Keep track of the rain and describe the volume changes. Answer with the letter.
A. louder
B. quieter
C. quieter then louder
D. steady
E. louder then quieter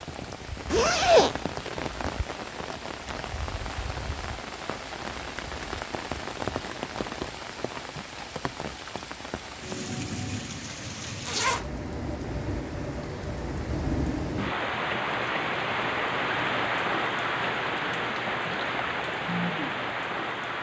A.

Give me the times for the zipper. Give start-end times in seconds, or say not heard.
0.7-1.4, 11.2-11.7.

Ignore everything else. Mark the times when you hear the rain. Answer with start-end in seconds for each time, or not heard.
0.0-20.5.